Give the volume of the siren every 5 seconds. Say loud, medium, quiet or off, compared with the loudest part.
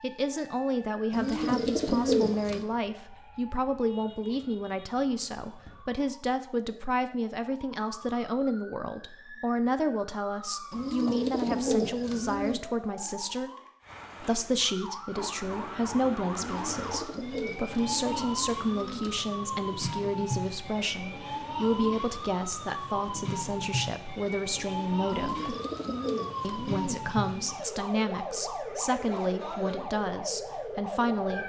quiet, quiet, medium, loud, loud, loud, loud.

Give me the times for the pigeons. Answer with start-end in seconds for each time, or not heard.
1.1-2.6, 10.7-12.6, 16.4-19.2, 25.1-27.6.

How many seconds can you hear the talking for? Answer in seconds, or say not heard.
30 s.